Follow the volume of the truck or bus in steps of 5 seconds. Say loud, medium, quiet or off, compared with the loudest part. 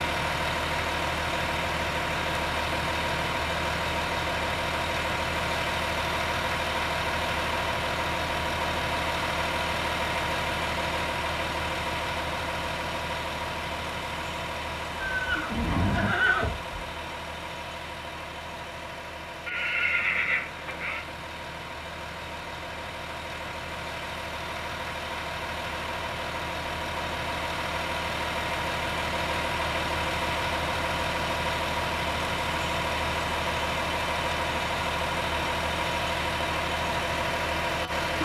loud, loud, loud, medium, medium, loud, loud, loud.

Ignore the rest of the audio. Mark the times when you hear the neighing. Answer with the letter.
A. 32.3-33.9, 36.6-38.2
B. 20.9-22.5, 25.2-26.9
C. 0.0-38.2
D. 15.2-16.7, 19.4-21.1
D.